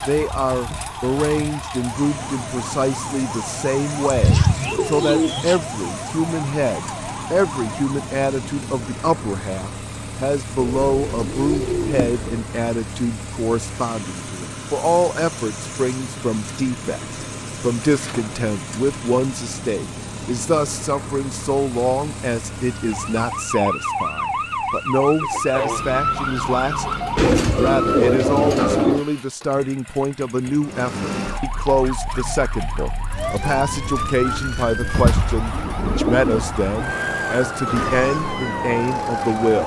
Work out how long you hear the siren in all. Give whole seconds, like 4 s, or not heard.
23 s.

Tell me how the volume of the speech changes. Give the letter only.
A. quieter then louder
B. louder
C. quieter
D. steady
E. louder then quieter
D.